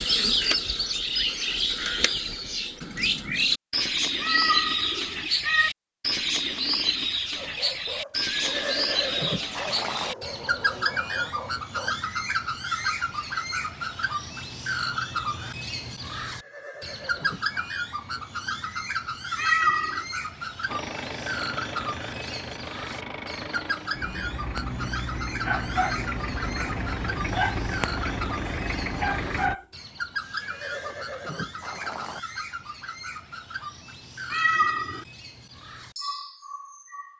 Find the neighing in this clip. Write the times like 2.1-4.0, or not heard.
8.1-10.2, 16.2-17.7, 30.2-32.2.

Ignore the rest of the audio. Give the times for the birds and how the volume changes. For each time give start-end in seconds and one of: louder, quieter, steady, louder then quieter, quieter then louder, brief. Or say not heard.
0.0-37.1 quieter.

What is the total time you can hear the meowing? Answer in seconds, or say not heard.
3 s.